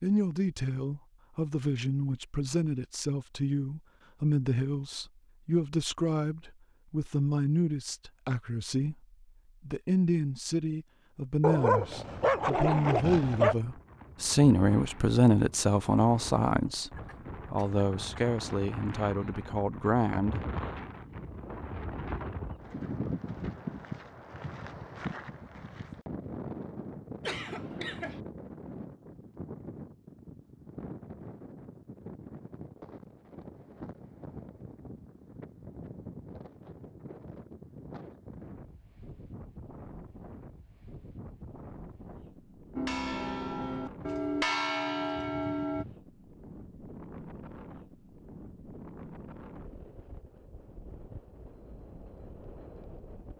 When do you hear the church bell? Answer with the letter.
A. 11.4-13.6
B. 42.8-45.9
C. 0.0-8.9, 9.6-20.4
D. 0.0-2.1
B.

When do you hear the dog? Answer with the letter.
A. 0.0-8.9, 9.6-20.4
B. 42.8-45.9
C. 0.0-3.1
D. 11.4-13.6
D.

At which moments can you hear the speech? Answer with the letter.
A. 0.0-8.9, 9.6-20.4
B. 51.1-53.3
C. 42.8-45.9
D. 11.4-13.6
A.